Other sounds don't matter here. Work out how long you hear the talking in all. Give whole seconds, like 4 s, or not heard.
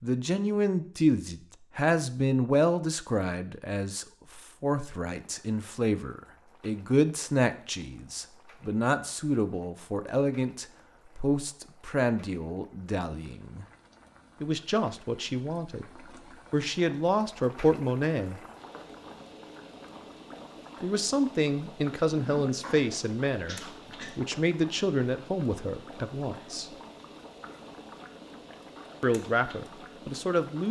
25 s.